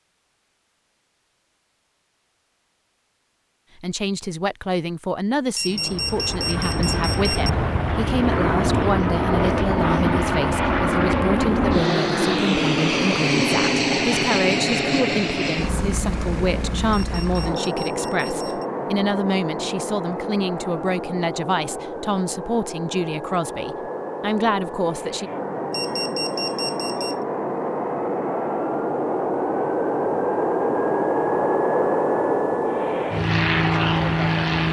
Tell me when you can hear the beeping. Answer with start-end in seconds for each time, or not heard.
5.5-7.5, 16.9-18.6, 25.7-27.1.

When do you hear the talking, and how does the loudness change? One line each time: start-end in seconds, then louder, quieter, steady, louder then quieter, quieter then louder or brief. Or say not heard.
3.8-25.3 steady.